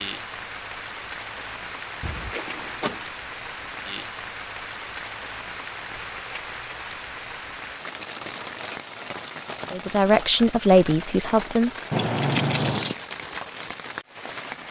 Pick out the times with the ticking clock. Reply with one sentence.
You can't hear the ticking clock here.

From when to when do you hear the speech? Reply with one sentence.
You can hear the speech from 9.7 to 11.7 s.